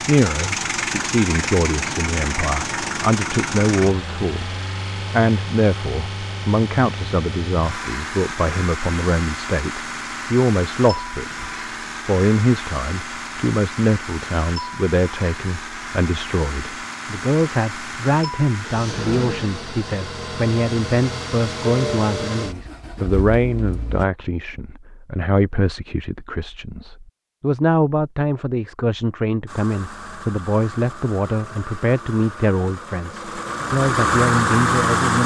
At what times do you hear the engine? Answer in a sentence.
The engine can be heard from 0.0 to 24.1 s and from 29.4 to 35.2 s.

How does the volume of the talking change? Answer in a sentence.
The volume of the talking stays about the same.